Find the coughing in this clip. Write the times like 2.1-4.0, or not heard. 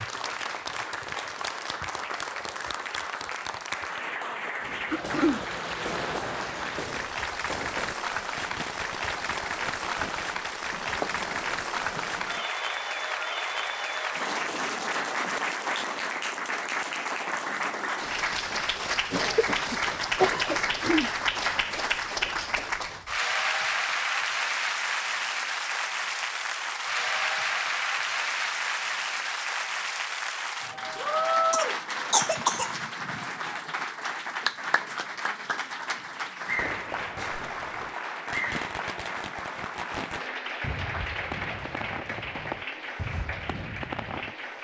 4.9-5.5, 19.1-21.1, 31.5-32.7.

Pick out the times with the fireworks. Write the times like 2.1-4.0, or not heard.
4.6-12.5, 36.5-44.4.